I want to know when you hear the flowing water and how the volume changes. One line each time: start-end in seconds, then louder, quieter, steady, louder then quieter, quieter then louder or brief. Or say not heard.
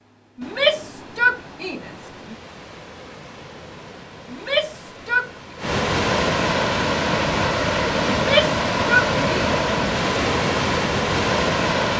0.0-11.9 louder.